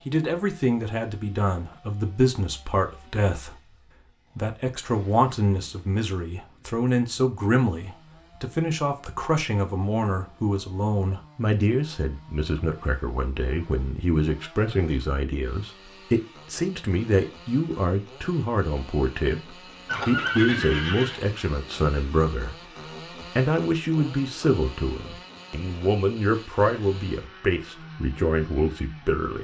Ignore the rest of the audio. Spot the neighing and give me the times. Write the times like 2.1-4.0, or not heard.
19.9-21.2.